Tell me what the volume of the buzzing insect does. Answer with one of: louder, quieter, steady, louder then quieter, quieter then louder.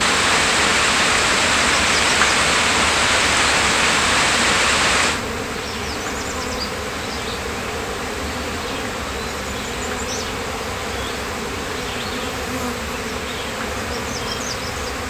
steady.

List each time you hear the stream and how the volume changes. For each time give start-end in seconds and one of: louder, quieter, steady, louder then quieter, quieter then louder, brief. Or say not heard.
0.0-15.0 quieter.